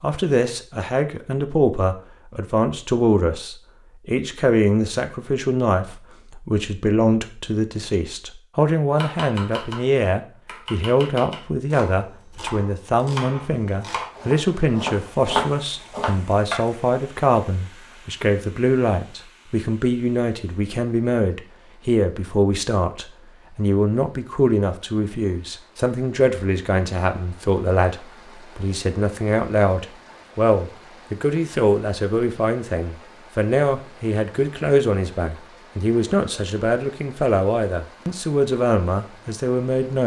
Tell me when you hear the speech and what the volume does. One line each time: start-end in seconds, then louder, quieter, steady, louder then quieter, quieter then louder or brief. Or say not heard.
0.0-40.0 steady.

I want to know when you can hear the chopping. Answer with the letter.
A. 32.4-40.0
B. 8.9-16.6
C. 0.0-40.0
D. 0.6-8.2
B.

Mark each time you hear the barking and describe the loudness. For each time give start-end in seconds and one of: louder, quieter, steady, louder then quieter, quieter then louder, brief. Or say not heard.
not heard.